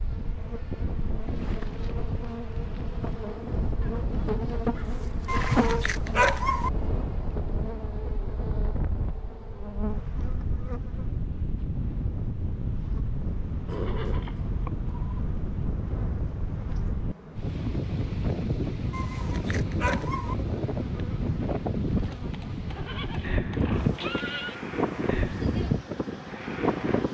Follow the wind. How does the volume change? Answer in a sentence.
The loudness of the wind goes up.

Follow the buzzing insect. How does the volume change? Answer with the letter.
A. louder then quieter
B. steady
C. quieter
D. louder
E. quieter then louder
C.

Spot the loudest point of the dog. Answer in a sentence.
The loudest moment of the dog is at 6 seconds.